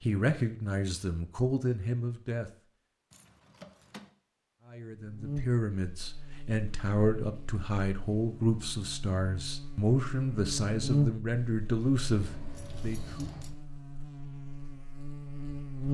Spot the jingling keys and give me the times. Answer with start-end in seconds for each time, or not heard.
3.1-4.1, 12.1-13.6.